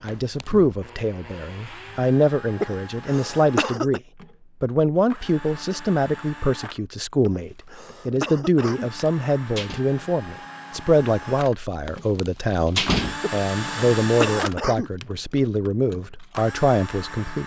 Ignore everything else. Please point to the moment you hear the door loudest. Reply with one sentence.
The loudest moment of the door is at 13 seconds.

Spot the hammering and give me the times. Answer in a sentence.
The hammering can't be heard in this clip.